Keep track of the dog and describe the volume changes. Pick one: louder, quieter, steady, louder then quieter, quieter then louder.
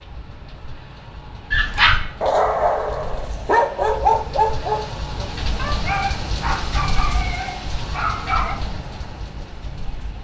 quieter.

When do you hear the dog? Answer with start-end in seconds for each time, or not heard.
1.5-8.6.